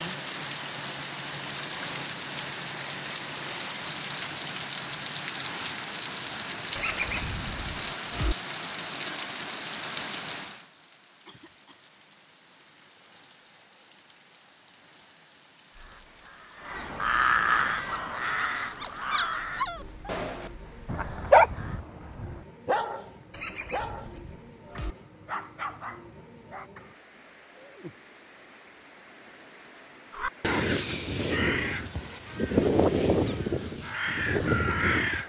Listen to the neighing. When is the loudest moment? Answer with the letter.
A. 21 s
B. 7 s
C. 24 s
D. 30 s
B.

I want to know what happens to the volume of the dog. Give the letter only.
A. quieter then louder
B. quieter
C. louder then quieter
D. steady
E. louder
C.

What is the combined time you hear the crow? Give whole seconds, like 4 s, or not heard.
11 s.